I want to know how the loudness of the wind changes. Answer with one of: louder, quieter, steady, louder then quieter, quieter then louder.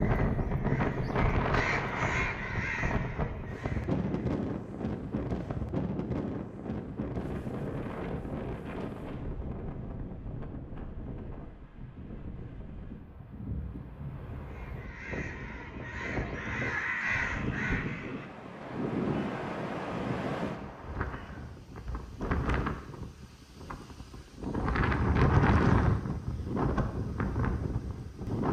quieter then louder.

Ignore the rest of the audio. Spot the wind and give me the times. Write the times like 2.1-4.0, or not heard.
0.0-28.4.